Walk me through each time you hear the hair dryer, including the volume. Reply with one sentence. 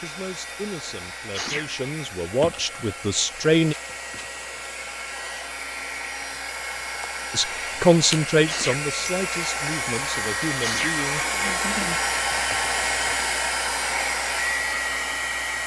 The hair dryer can be heard from 0.0 to 15.6 s, getting louder.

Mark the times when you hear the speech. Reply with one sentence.
The speech can be heard from 0.0 to 3.8 s and from 7.3 to 11.2 s.